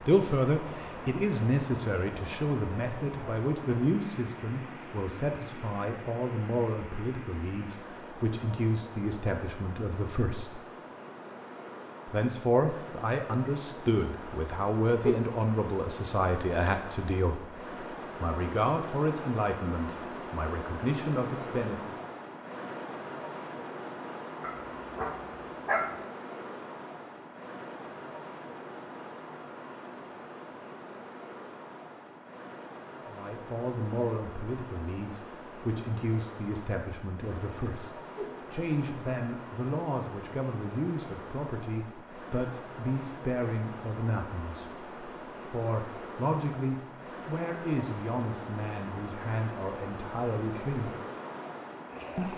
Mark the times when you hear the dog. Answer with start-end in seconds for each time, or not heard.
24.4-26.0.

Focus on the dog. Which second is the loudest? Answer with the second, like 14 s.
26 s.